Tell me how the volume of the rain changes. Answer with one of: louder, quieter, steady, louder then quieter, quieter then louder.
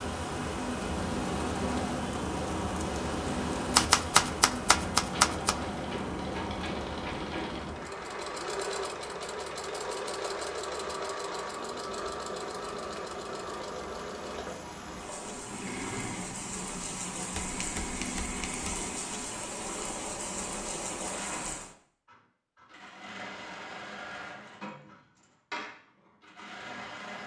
quieter then louder.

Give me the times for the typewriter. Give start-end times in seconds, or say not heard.
3.7-5.5, 17.3-18.9.